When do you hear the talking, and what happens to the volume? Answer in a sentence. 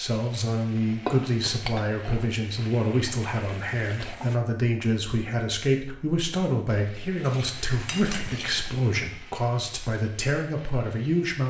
You can hear the talking from 0.0 to 11.4 s, at a steady volume.